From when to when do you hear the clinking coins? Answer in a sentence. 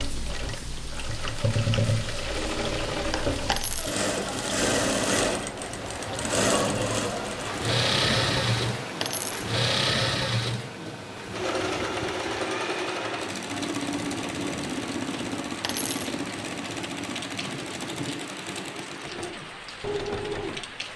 You can hear the clinking coins from 3.5 to 4.0 s, from 9.0 to 9.6 s and from 15.6 to 16.1 s.